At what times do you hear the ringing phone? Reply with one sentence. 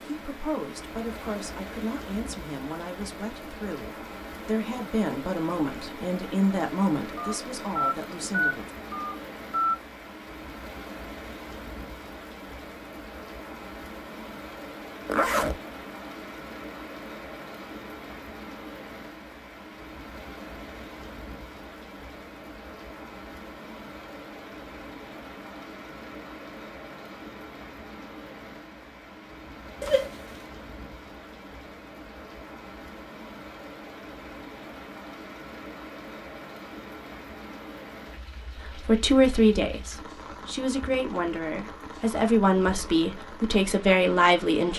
The ringing phone can be heard from 7.2 to 9.8 s.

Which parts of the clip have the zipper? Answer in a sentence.
The zipper can be heard from 15.1 to 15.6 s and from 29.8 to 30.4 s.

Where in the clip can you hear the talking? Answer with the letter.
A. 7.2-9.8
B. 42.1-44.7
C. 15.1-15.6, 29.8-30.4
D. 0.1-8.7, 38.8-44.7
D.